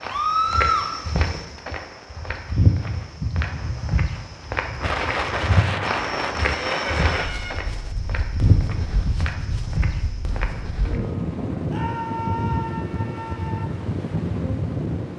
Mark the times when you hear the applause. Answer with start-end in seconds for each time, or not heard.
not heard.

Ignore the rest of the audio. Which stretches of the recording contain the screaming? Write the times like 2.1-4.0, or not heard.
0.1-0.9, 6.4-7.6, 11.7-13.7.